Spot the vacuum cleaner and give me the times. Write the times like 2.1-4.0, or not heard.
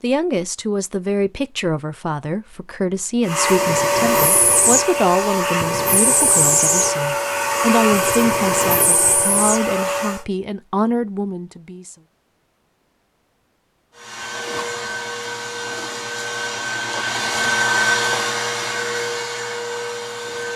3.2-10.2, 13.9-20.5.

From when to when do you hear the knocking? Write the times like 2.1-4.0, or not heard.
not heard.